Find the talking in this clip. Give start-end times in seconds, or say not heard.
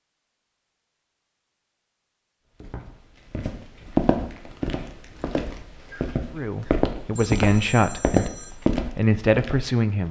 6.3-10.0.